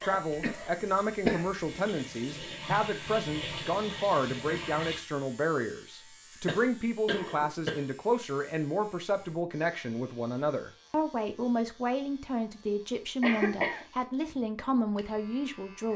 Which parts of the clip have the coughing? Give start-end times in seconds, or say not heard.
0.0-1.4, 6.5-7.8, 13.2-13.8.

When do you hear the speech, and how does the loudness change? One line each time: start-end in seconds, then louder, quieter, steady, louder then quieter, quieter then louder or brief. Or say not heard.
0.0-15.9 steady.